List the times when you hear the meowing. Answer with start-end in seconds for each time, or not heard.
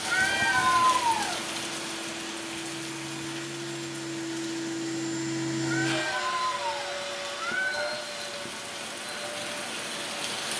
0.0-1.4, 5.6-8.0.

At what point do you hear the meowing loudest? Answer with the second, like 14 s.
1 s.